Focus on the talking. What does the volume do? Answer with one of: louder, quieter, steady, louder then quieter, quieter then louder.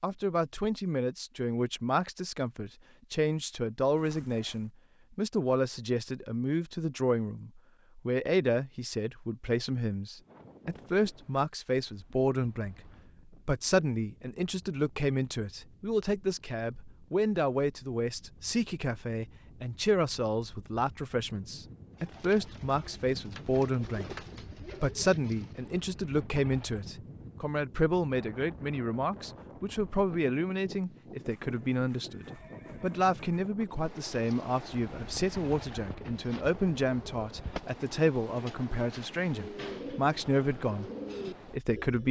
steady.